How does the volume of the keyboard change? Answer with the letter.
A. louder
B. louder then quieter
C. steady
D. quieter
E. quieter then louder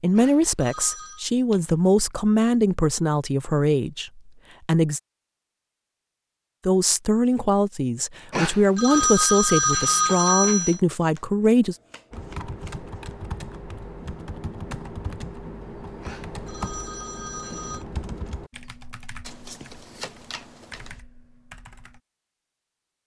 D.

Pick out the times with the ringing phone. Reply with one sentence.
The ringing phone can be heard from 0.1 to 1.2 s, from 8.3 to 10.8 s and from 16.0 to 17.9 s.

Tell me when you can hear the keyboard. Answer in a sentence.
You can hear the keyboard from 12.1 to 22.0 s.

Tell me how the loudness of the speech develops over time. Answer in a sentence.
The volume of the speech stays about the same.